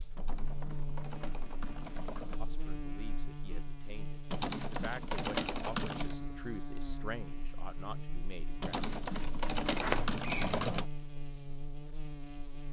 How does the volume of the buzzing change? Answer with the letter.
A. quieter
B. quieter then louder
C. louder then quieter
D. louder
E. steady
E.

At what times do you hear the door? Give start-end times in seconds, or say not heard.
9.7-10.8.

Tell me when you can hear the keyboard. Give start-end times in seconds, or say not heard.
0.1-2.4, 4.3-6.2, 8.6-10.8.